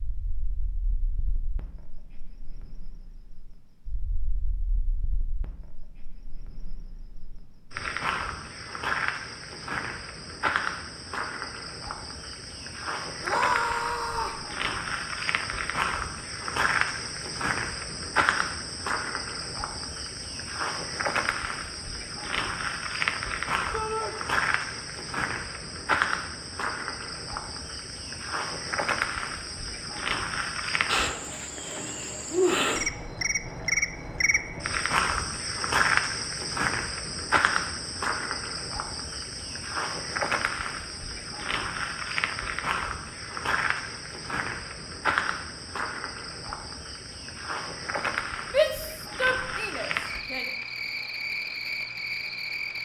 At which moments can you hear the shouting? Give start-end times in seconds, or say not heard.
13.2-14.4, 23.7-24.1, 48.5-50.5.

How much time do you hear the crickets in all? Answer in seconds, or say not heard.
53 s.